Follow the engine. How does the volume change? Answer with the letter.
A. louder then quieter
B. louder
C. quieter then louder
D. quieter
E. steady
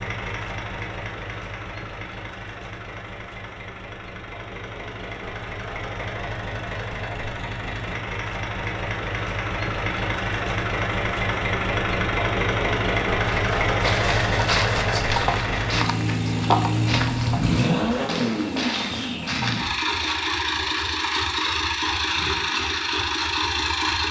B.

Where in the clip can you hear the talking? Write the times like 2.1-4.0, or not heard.
not heard.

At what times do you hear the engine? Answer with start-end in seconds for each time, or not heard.
0.0-24.0.